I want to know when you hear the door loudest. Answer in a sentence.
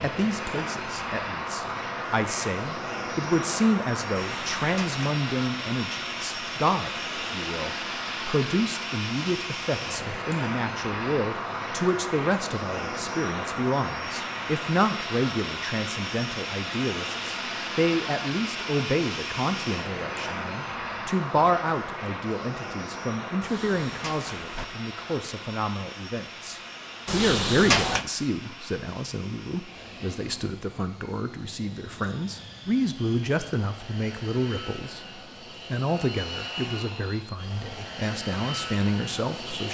The volume of the door peaks at 28 seconds.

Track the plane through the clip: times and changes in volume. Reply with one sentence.
You can hear the plane from 0.0 to 39.6 s, getting quieter.